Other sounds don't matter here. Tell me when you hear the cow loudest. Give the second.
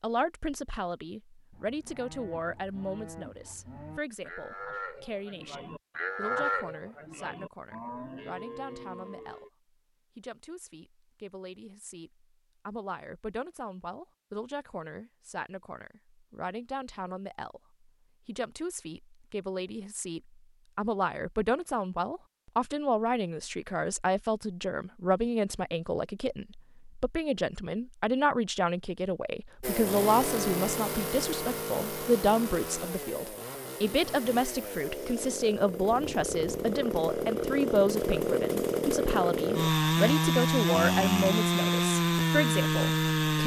6 s.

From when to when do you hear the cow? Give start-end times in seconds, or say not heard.
1.5-9.5.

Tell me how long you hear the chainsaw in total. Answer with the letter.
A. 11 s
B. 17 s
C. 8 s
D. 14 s
D.